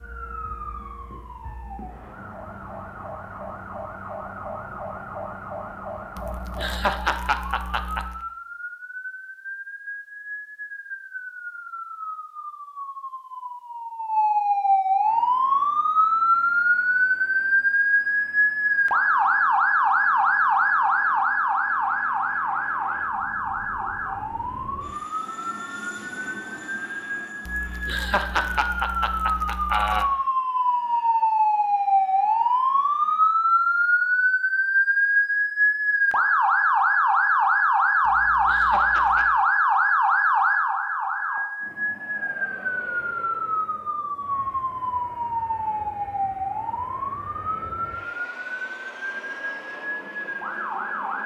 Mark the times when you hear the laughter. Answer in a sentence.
The laughter can be heard from 6.2 to 8.2 s, from 27.4 to 30.1 s and from 38.0 to 39.4 s.